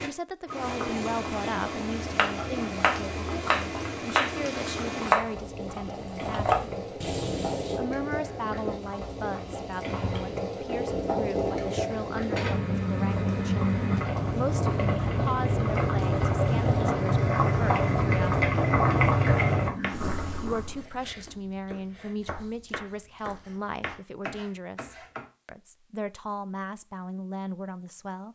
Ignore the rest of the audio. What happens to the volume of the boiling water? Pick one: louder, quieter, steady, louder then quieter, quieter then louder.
louder.